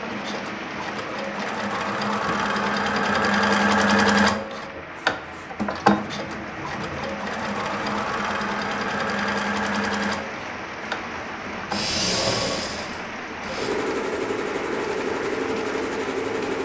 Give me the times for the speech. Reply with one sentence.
You can't hear the speech here.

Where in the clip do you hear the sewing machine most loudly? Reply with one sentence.
The loudest moment of the sewing machine is at 4 seconds.